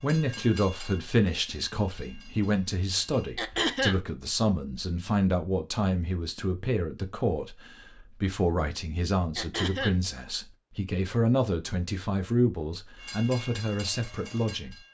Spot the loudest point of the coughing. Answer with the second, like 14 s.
4 s.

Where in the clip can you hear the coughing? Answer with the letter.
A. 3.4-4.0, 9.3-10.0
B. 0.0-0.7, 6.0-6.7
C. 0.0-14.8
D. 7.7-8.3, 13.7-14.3
A.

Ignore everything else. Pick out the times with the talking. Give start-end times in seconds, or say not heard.
0.0-14.8.